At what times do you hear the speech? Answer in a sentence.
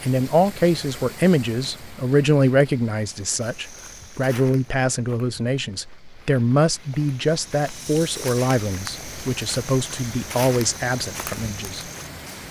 The speech can be heard from 0.0 to 11.8 s.